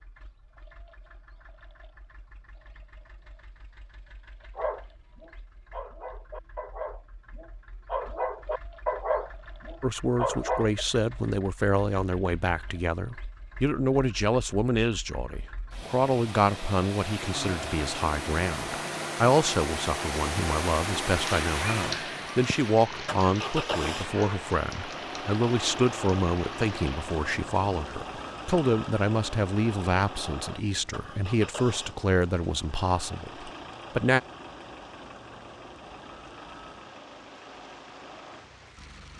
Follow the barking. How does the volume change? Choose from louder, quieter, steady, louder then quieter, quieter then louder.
louder.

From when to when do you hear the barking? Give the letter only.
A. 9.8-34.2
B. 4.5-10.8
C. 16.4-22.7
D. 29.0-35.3
B.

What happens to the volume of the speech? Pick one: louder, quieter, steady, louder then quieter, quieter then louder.
steady.